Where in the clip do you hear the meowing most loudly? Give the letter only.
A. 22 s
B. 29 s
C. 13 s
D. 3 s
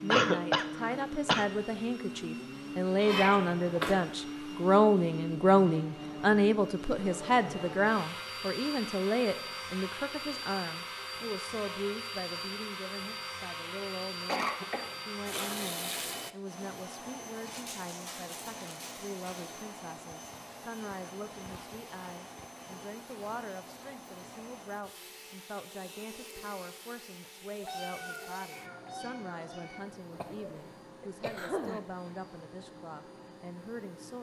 D.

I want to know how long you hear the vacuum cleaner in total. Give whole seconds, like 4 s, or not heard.
34 s.